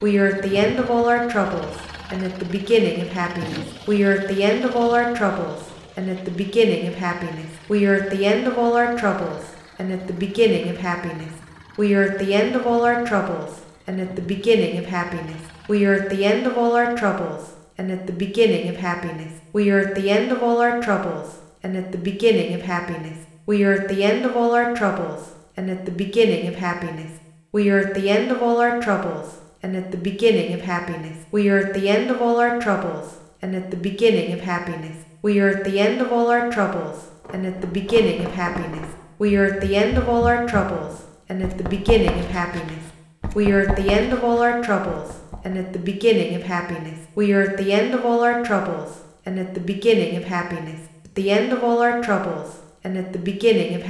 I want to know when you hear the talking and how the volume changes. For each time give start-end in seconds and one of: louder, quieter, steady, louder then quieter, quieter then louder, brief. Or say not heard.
0.0-53.8 steady.